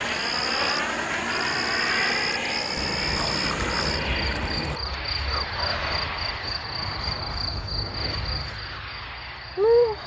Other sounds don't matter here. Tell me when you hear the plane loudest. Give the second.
2 s.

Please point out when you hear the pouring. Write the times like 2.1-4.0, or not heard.
2.8-4.8.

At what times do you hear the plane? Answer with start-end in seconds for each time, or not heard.
0.0-10.0.